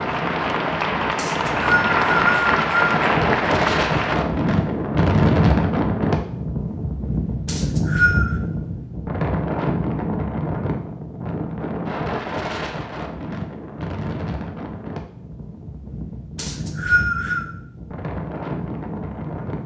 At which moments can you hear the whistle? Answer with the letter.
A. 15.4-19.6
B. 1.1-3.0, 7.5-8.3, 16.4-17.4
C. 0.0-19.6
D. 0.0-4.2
B.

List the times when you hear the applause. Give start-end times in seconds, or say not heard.
0.0-4.2.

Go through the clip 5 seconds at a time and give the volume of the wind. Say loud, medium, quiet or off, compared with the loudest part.
loud, loud, medium, medium.